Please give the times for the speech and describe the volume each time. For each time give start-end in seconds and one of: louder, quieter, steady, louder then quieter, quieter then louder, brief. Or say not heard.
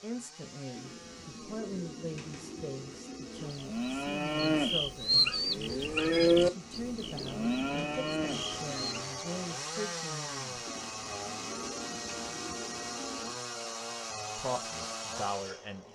0.0-10.8 steady
14.3-15.8 brief.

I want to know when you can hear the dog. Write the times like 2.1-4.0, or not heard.
not heard.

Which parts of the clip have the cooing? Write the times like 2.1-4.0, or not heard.
0.7-3.5, 6.3-9.1, 10.7-13.4.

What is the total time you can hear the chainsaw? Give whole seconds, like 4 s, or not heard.
16 s.